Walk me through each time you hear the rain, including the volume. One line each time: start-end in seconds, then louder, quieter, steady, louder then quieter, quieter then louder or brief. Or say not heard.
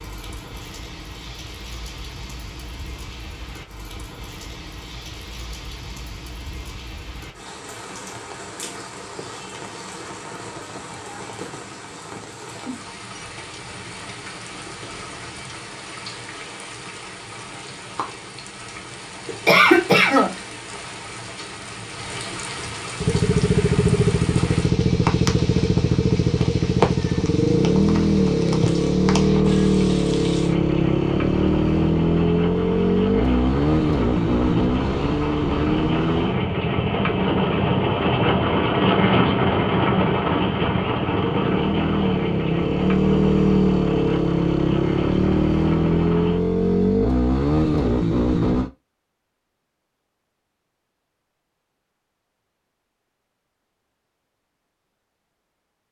0.0-46.4 louder.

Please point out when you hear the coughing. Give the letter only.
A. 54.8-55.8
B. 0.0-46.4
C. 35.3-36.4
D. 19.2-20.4
D.